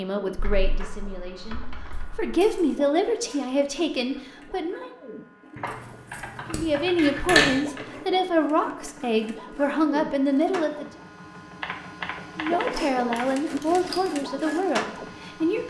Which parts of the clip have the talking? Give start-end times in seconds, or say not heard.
0.0-5.0, 6.5-10.8, 12.3-15.6.